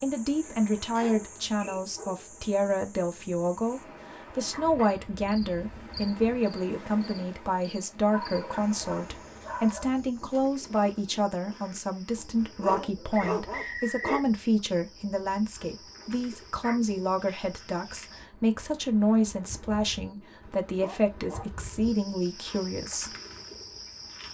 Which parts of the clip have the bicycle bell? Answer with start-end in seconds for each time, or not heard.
not heard.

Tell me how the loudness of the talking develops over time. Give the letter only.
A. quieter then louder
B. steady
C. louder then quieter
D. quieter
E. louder
B.